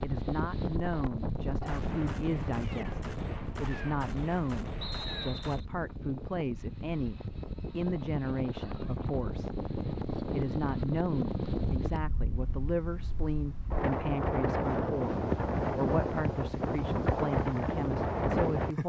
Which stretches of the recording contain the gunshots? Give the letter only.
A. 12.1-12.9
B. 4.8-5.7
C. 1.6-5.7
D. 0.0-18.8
C.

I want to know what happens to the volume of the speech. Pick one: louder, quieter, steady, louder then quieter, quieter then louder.
steady.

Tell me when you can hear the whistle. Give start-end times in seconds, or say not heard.
4.8-5.7.